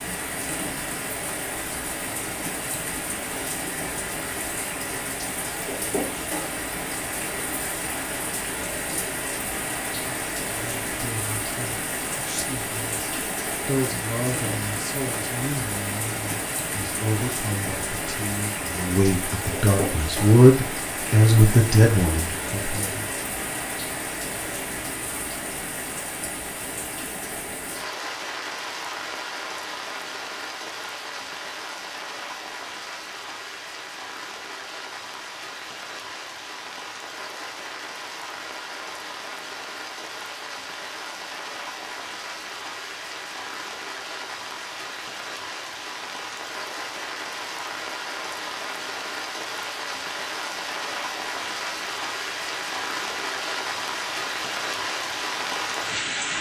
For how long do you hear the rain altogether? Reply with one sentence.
You can hear the rain for 56 seconds altogether.